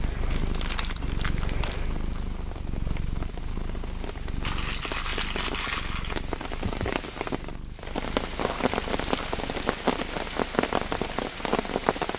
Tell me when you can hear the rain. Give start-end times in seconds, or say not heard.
0.0-12.1.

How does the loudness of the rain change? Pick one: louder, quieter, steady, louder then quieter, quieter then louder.
louder.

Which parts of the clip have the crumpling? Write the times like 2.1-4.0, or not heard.
0.3-2.2, 4.4-6.2, 8.4-9.8.